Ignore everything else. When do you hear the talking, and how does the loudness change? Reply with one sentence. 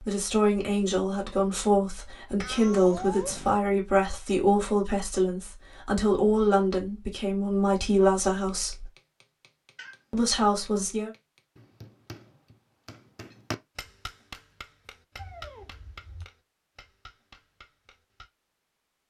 You can hear the talking from 0.0 to 8.9 s, at a steady volume; and briefly from 10.1 to 11.1 s.